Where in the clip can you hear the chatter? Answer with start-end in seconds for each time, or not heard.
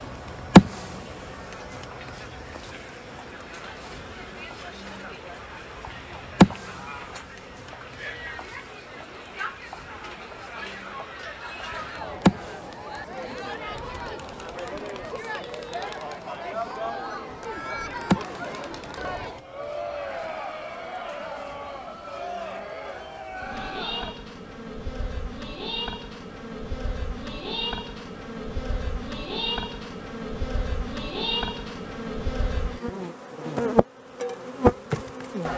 0.0-24.1.